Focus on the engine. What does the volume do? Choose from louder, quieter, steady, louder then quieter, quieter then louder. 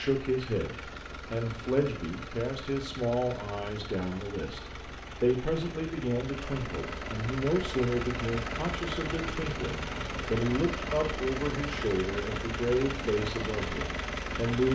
louder.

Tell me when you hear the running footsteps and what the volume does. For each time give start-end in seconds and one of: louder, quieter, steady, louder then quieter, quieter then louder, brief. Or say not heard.
not heard.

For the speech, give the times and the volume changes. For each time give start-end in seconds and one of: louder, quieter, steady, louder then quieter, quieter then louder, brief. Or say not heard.
0.0-14.7 steady.